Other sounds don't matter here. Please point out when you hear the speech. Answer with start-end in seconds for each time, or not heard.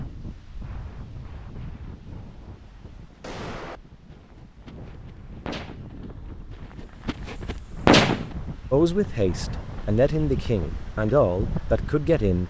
8.7-12.4.